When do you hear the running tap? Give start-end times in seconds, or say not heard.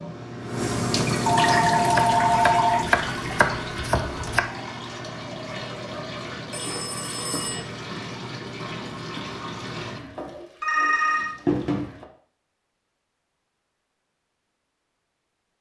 0.0-12.1.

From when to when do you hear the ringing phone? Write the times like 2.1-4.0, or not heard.
1.2-3.0, 6.5-7.6, 10.6-11.3.